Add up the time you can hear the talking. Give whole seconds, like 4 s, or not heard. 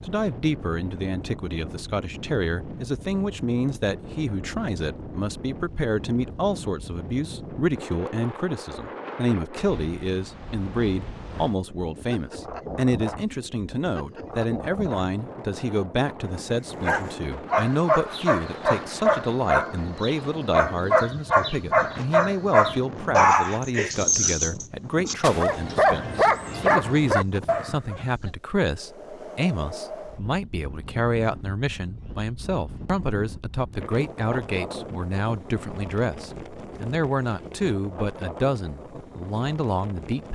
40 s.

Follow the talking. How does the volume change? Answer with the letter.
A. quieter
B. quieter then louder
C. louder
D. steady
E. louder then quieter
D.